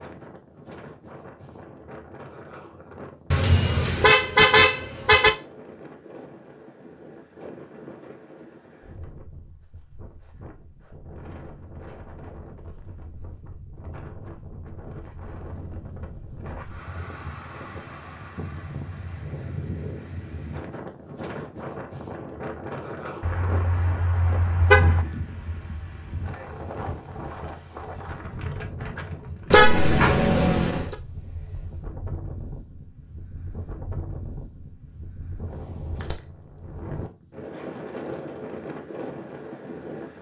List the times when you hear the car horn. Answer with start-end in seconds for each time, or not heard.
3.3-5.3, 23.2-25.1, 29.5-30.9.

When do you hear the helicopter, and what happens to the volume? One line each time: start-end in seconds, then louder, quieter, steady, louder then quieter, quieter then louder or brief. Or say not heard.
not heard.